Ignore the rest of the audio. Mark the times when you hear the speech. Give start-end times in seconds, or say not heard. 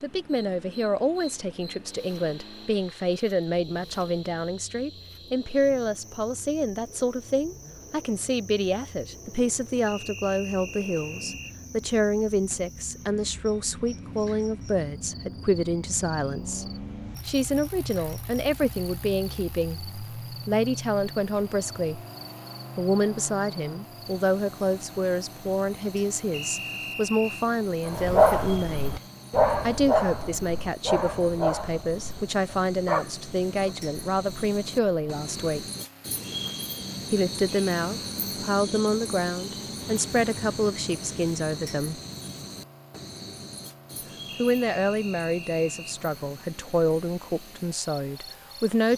0.0-16.6, 17.2-22.0, 22.8-29.0, 29.6-35.6, 37.1-42.0, 44.4-48.9.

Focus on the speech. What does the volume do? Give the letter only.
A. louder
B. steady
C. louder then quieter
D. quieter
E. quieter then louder
B.